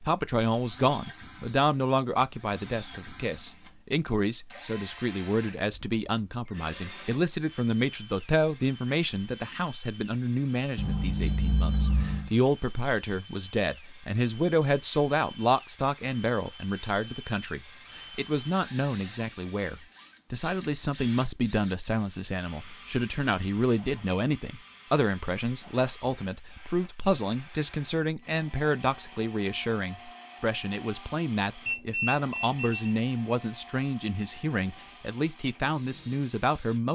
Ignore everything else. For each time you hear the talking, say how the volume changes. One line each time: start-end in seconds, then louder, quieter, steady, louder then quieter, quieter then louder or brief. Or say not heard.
0.0-36.8 steady.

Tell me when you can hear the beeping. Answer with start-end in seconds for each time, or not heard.
10.8-12.3, 31.6-33.0.